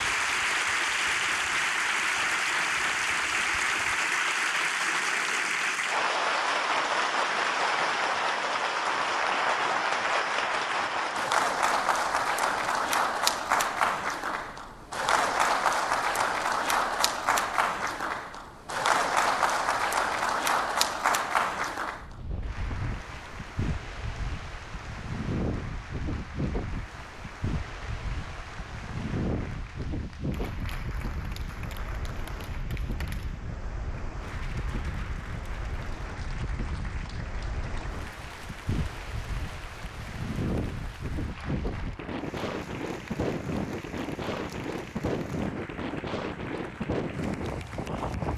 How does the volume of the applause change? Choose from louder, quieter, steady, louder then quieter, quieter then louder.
quieter.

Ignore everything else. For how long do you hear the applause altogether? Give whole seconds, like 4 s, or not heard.
48 s.